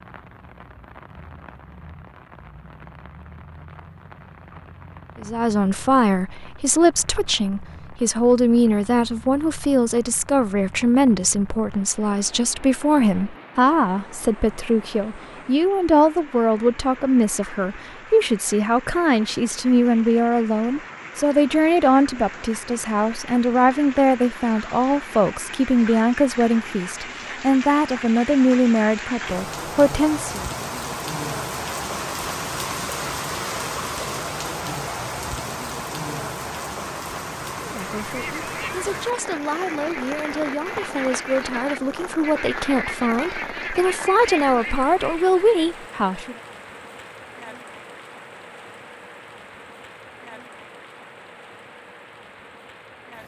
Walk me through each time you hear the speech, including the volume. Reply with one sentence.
The speech can be heard from 5.2 to 30.4 s, at a steady volume; and from 37.6 to 46.4 s, getting louder.